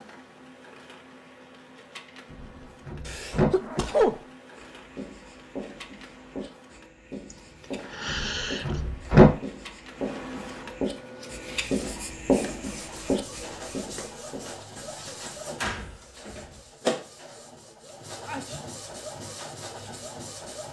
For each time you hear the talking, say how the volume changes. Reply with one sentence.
The talking can't be heard in this clip.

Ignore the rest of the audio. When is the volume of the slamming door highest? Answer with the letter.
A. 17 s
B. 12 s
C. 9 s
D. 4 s
C.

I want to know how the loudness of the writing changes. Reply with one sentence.
The volume of the writing goes up.